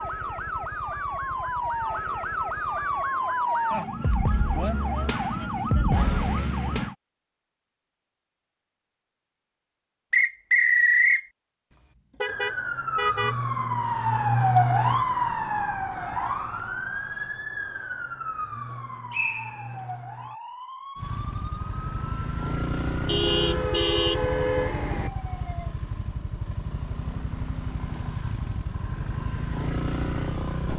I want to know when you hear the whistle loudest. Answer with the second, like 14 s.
11 s.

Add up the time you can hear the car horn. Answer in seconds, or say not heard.
3 s.